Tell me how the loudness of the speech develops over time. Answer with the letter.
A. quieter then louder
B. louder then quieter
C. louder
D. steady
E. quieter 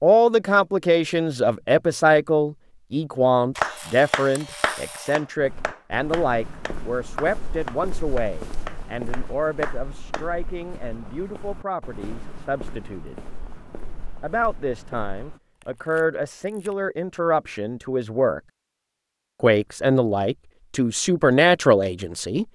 A.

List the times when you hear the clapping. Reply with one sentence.
You can hear the clapping from 3.6 to 10.2 s.